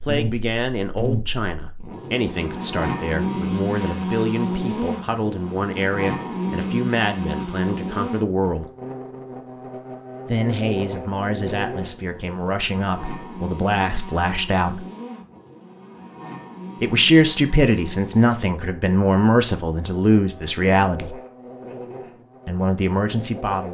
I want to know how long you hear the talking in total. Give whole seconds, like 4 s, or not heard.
19 s.